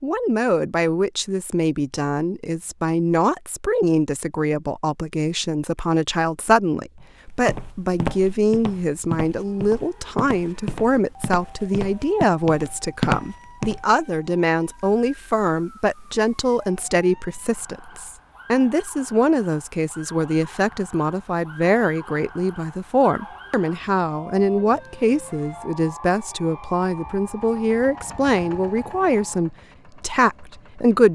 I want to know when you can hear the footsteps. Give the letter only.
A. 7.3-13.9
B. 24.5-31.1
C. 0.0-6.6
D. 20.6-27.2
A.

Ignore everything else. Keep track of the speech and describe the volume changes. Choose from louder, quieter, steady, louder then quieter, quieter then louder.
steady.